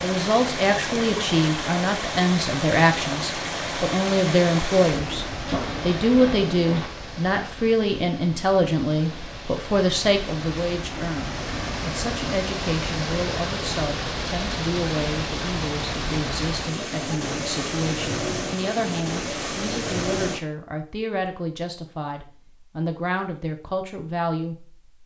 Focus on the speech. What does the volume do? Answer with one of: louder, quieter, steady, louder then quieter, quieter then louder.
quieter.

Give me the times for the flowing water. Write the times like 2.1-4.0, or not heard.
0.0-20.4.